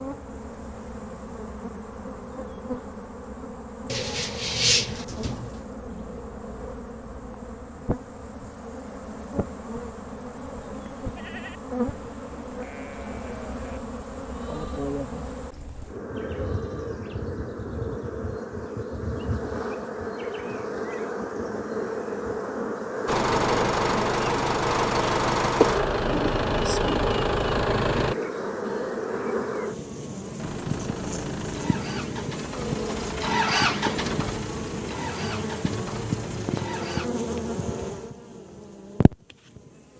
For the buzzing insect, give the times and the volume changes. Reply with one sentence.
The buzzing insect can be heard from 0.0 to 39.9 s, getting louder.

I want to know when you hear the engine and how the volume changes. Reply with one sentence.
The engine can be heard from 23.1 to 28.1 s, at a steady volume; and from 30.4 to 37.1 s, getting louder then quieter.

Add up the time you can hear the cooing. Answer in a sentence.
The cooing can be heard for 2 seconds in total.